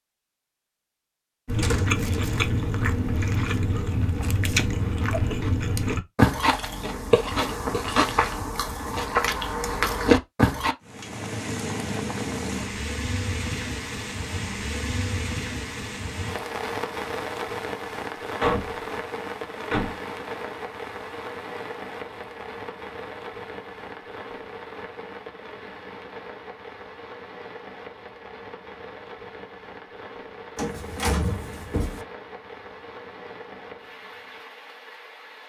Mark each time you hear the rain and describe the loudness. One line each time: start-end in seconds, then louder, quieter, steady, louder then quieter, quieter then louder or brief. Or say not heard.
10.8-35.4 quieter.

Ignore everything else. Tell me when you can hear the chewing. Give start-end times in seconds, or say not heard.
1.4-10.8.